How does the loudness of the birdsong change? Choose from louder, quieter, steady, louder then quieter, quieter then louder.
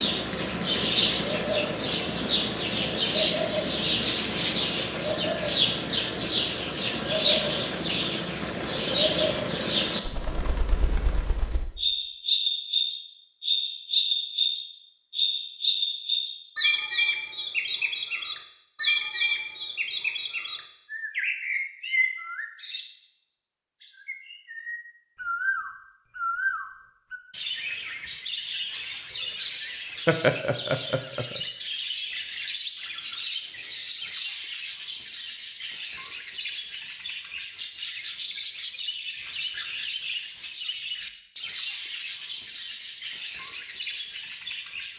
quieter.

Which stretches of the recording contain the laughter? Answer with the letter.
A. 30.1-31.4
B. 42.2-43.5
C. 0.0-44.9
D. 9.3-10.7
A.